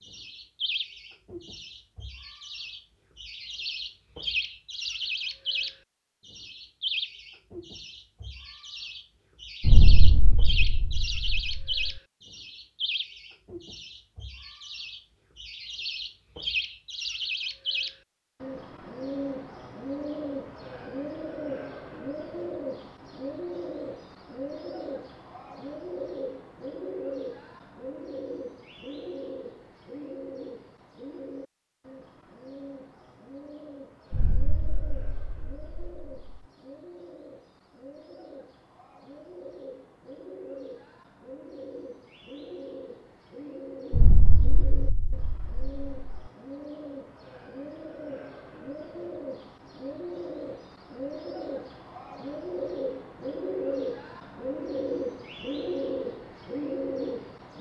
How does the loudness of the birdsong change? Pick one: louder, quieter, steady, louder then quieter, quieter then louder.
quieter then louder.